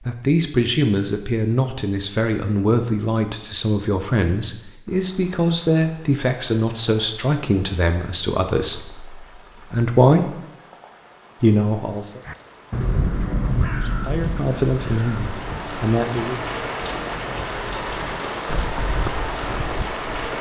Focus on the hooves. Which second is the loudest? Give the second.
19 s.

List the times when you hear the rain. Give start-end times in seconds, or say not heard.
4.8-20.3.